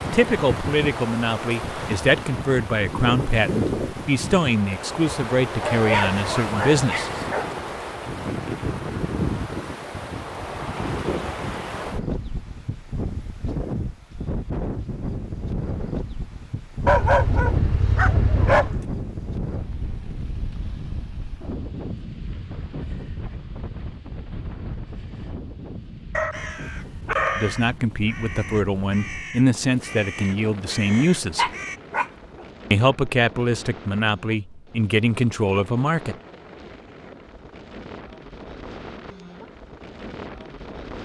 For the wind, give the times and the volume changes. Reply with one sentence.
The wind can be heard from 0.0 to 40.9 s, getting quieter.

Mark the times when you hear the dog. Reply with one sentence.
You can hear the dog from 5.6 to 7.5 s, from 16.9 to 18.9 s, from 26.1 to 27.6 s and from 31.4 to 32.5 s.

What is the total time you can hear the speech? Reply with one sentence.
The speech can be heard for 15 seconds in total.